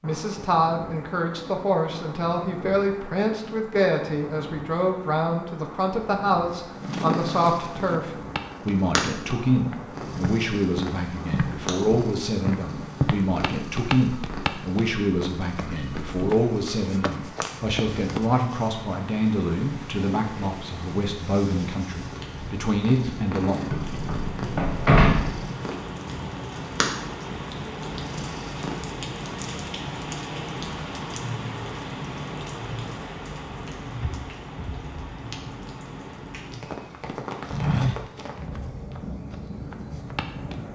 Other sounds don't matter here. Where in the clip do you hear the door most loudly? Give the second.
25 s.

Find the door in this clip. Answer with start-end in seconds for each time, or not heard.
23.7-25.4.